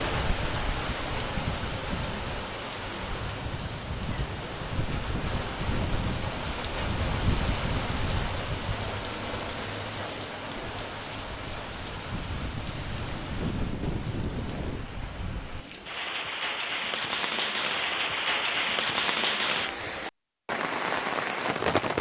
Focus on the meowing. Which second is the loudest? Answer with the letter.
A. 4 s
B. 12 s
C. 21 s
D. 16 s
A.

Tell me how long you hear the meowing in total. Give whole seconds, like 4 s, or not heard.
2 s.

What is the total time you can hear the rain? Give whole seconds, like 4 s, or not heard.
22 s.